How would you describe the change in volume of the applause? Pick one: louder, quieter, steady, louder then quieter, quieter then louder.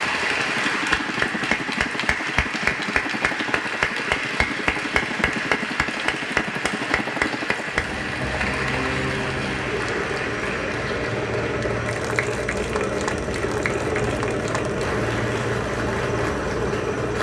quieter.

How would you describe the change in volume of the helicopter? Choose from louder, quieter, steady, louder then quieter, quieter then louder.
louder.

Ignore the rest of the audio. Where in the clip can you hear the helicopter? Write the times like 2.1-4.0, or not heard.
0.0-17.1.